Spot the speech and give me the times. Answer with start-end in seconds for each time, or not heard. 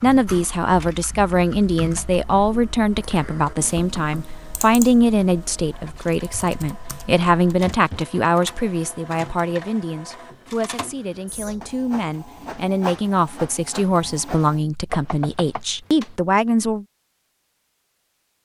0.0-16.9.